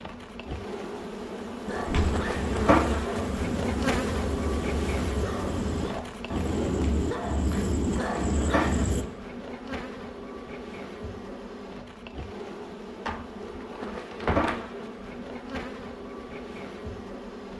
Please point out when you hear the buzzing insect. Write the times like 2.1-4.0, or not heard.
0.0-17.5.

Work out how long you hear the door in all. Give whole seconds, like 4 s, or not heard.
2 s.